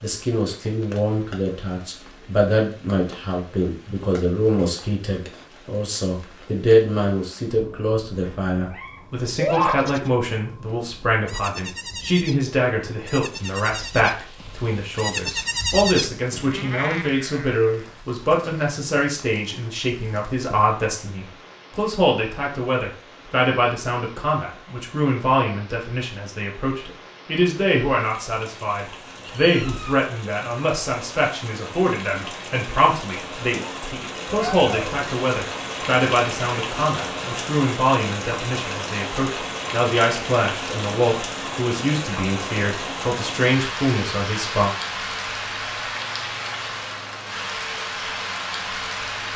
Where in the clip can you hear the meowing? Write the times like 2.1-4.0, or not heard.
8.1-9.7, 28.8-30.0, 34.2-35.0.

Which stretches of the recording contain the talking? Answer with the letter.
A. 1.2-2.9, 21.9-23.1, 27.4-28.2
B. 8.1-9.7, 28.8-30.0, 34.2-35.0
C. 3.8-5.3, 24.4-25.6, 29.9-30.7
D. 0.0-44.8
D.